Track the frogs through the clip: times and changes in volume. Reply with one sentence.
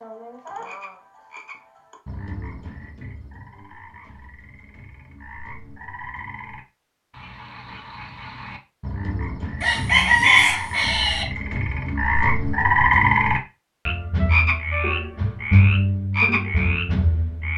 You can hear the frogs from 0.0 to 17.5 s, getting louder.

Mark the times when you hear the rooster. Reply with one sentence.
You can hear the rooster from 9.6 to 11.2 s.